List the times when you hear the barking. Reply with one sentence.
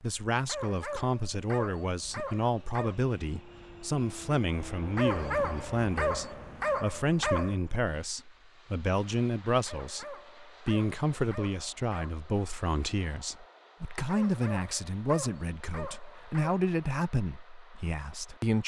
The barking can be heard from 0.5 to 3.0 s, from 5.0 to 7.6 s, from 9.7 to 12.2 s and from 14.1 to 16.6 s.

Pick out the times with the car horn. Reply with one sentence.
You can't hear the car horn here.